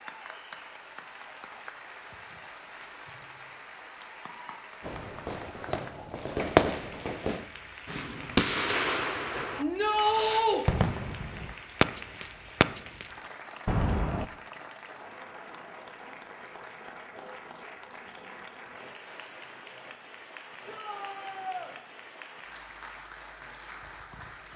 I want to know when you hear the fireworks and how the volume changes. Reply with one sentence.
You can hear the fireworks from 4.8 to 13.1 s, getting quieter then louder; and briefly from 13.7 to 14.2 s.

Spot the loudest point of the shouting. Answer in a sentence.
The loudest moment of the shouting is at 10 seconds.